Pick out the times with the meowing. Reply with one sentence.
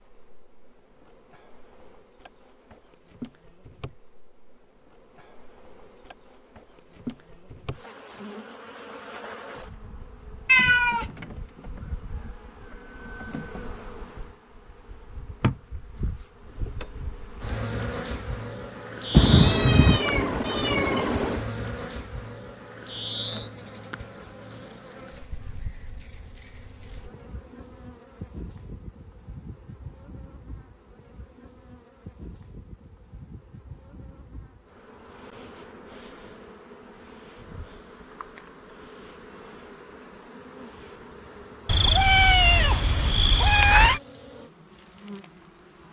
You can hear the meowing from 10.4 to 11.2 s, from 19.1 to 21.4 s and from 41.6 to 44.0 s.